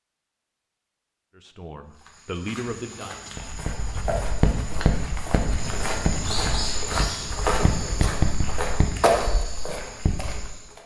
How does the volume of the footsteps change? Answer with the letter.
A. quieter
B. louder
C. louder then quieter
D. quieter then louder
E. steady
B.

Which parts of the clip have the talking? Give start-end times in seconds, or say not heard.
1.4-3.5.